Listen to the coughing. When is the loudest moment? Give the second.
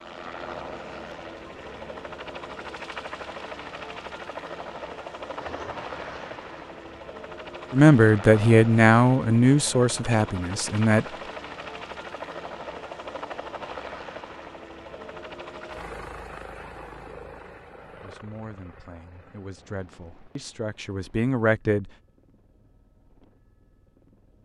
6 s.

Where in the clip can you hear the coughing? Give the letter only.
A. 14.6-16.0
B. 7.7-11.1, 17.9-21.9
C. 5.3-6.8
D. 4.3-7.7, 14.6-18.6
C.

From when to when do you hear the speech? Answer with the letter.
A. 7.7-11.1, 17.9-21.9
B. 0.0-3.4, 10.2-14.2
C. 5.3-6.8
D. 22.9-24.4
A.